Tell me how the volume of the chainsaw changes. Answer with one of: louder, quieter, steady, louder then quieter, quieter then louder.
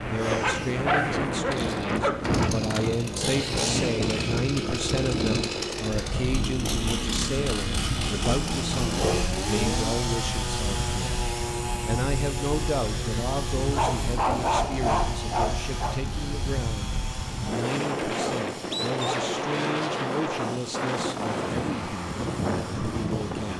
quieter.